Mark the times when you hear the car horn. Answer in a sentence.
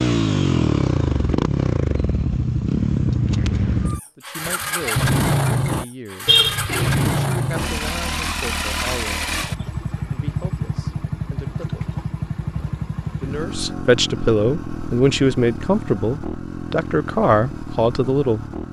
You can hear the car horn from 6.2 to 7.0 s.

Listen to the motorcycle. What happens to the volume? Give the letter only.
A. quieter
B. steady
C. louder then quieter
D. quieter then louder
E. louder
A.